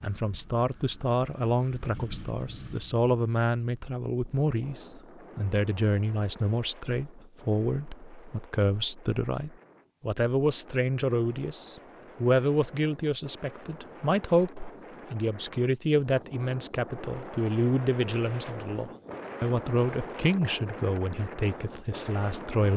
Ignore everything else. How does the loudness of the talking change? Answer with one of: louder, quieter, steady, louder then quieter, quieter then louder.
steady.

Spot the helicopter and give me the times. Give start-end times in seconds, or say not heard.
not heard.